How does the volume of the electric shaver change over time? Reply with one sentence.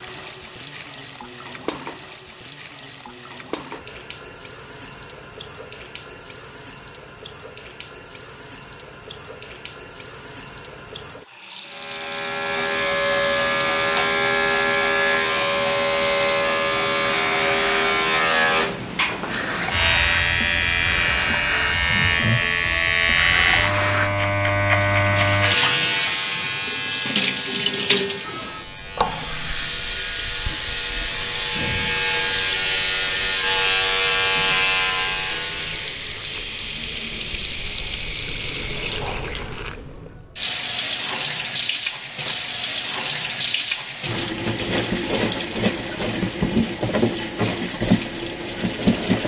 The volume of the electric shaver goes down, then up.